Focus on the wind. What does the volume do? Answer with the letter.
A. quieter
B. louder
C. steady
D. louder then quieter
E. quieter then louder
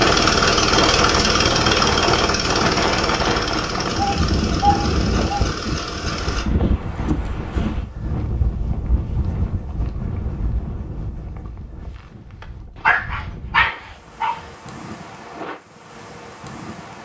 A.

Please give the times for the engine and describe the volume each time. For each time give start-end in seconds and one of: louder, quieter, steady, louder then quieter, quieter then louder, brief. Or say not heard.
0.0-6.5 quieter.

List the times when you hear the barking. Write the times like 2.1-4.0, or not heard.
4.0-5.5, 12.8-14.4.